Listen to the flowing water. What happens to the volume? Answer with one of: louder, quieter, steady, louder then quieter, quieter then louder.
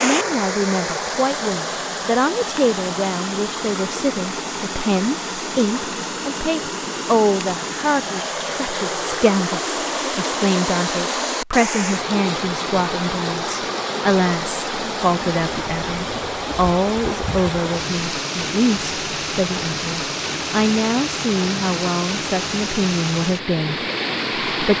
steady.